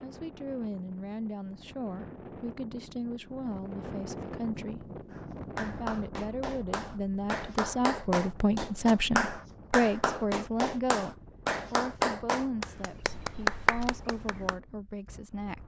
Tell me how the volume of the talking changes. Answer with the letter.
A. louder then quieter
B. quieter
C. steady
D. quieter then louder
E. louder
A.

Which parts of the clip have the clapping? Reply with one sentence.
You can hear the clapping from 5.1 to 14.6 s.